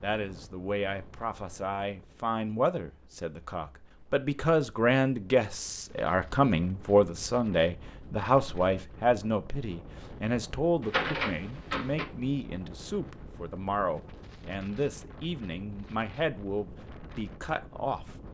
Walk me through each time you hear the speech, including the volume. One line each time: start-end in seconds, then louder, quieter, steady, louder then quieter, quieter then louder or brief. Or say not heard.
0.0-18.1 louder then quieter.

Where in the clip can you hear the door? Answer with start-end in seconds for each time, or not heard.
10.8-12.1.